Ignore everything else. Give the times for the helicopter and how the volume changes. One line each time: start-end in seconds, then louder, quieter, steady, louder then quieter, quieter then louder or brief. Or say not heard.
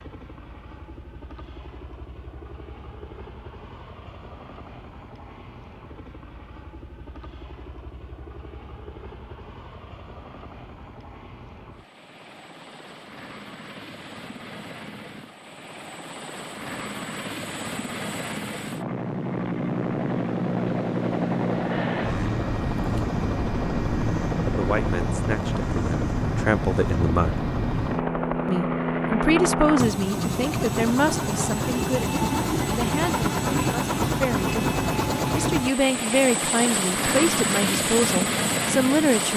0.0-39.3 louder.